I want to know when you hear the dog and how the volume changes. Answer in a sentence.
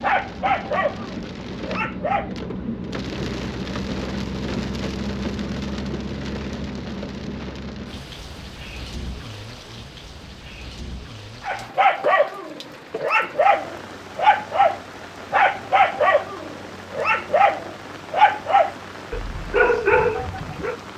The dog can be heard briefly from 0.0 to 2.4 s; and from 11.4 to 20.8 s, at a steady volume.